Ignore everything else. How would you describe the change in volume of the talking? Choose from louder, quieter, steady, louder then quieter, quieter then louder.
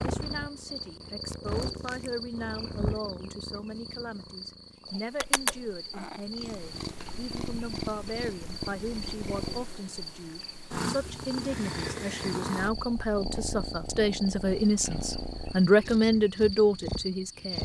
louder.